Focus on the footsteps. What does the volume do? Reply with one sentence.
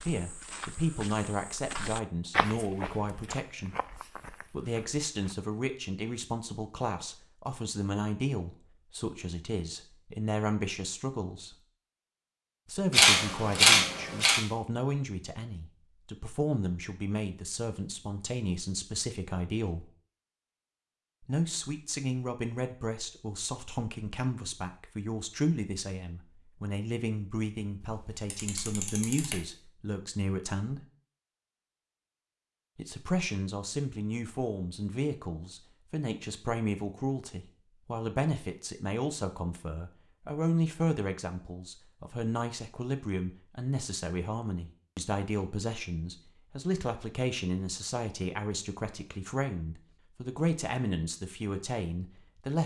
The volume of the footsteps goes up, then down.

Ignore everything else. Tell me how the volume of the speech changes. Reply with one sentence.
The volume of the speech stays about the same.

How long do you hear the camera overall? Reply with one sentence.
You can hear the camera for 3 seconds altogether.